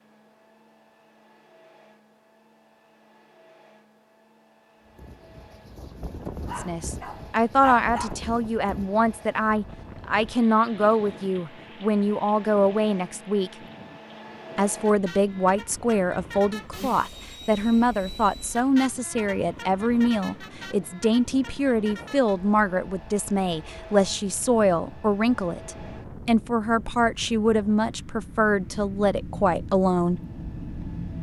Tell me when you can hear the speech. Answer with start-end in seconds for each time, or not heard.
6.5-13.5, 14.6-30.2.